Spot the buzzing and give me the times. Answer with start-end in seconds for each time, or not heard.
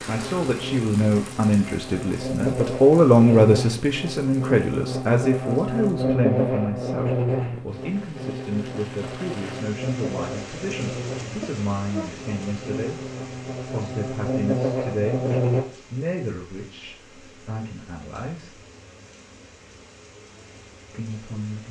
0.1-15.7.